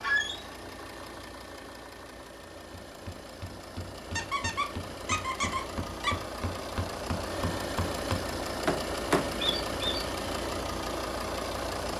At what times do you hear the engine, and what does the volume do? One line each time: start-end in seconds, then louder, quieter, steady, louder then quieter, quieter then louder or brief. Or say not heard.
0.0-11.9 louder.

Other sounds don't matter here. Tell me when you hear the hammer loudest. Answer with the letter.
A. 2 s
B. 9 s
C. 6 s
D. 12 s
B.